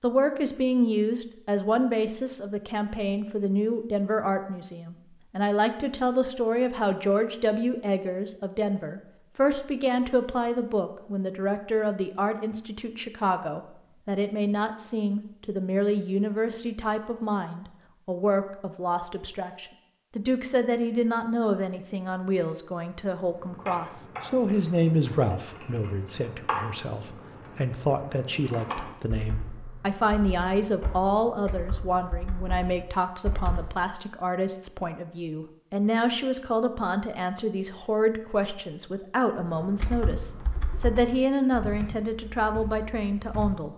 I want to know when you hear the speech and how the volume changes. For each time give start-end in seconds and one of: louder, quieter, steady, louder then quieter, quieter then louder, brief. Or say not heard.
0.0-43.7 steady.